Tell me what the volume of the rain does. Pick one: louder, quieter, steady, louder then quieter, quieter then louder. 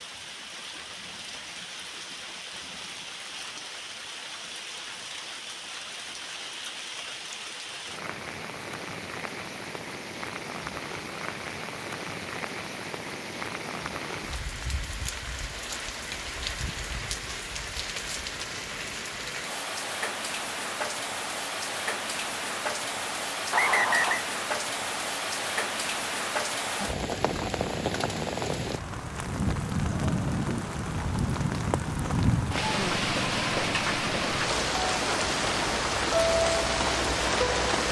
louder.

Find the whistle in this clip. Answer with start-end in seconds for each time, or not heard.
23.5-24.2.